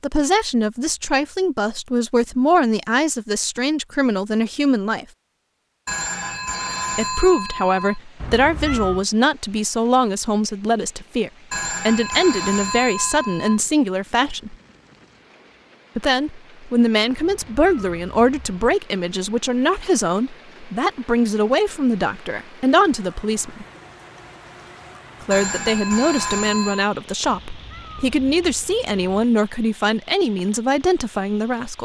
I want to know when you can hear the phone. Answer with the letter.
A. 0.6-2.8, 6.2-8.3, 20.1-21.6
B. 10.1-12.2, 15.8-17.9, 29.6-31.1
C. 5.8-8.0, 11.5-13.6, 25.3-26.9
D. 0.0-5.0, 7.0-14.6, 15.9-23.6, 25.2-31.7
C.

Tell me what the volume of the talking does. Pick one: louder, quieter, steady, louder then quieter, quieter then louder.
steady.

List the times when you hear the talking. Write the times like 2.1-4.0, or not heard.
0.0-5.0, 7.0-14.6, 15.9-23.6, 25.2-31.7.